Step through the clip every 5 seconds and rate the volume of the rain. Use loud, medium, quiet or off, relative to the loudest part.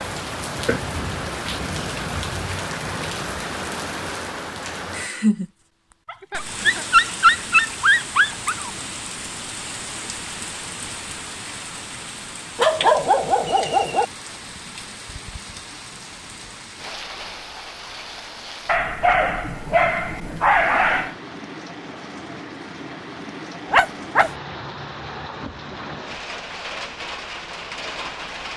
loud, loud, medium, medium, medium, loud.